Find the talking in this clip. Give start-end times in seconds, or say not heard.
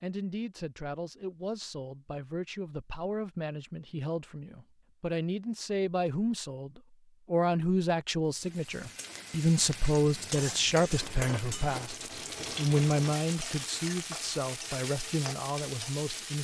0.0-16.4.